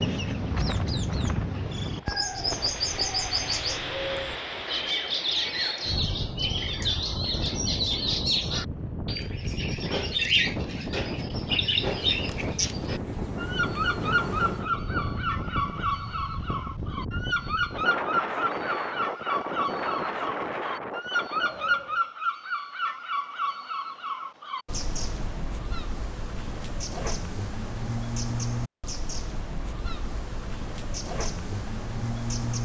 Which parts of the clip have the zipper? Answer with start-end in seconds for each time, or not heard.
not heard.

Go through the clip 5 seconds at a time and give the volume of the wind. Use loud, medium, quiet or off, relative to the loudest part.
loud, loud, loud, loud, loud, off, off.